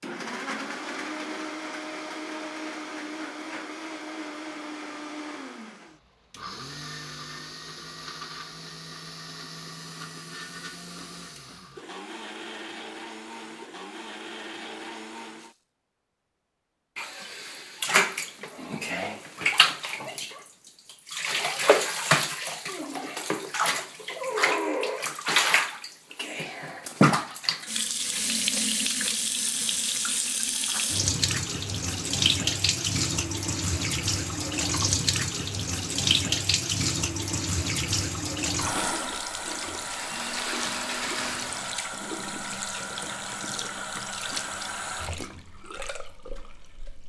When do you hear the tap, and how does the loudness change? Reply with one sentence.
You can hear the tap from 16.9 to 47.0 s, getting quieter.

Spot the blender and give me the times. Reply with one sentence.
The blender can be heard from 0.0 to 15.6 s and from 39.8 to 41.9 s.